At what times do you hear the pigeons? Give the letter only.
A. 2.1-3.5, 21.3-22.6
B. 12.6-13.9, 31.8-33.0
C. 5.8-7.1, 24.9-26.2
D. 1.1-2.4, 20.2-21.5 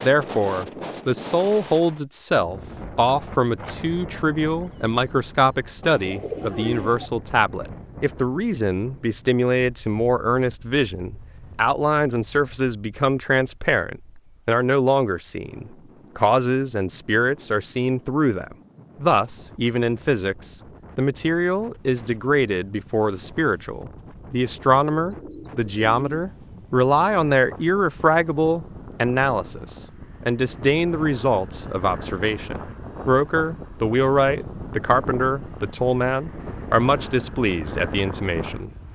C.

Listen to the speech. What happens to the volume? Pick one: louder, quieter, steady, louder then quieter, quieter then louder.
steady.